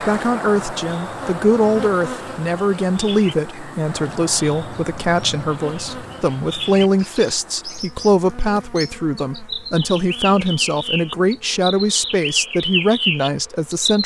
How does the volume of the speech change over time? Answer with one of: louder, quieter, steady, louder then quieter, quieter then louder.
steady.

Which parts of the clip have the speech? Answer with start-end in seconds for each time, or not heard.
0.0-14.0.